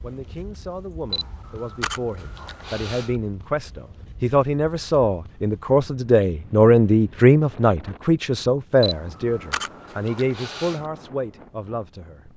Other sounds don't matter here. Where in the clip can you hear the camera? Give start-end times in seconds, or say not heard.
1.1-3.1, 8.8-10.8.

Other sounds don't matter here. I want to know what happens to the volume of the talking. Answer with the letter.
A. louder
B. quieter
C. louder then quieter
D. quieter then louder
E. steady
C.